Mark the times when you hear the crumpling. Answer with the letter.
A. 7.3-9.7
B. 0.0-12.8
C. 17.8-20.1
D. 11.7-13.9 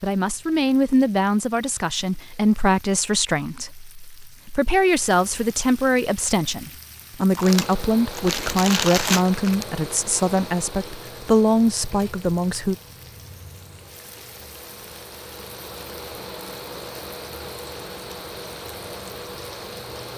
A.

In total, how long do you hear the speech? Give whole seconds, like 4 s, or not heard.
13 s.